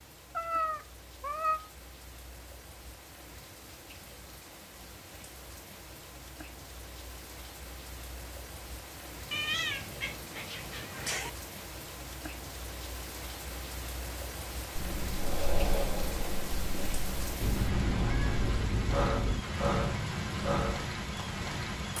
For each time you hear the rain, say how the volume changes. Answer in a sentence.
You can hear the rain from 0.0 to 21.9 s, getting louder.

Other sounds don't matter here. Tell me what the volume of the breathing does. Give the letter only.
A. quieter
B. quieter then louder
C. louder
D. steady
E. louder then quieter
B.